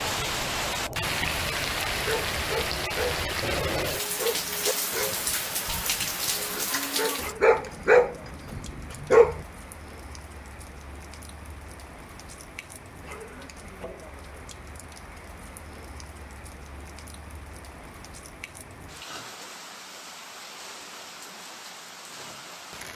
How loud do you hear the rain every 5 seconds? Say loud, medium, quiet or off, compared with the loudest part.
loud, medium, quiet, quiet, quiet.